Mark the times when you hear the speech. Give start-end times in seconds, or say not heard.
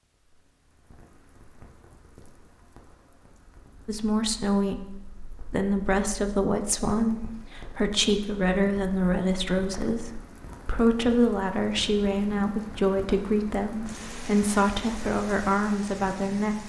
3.9-16.6.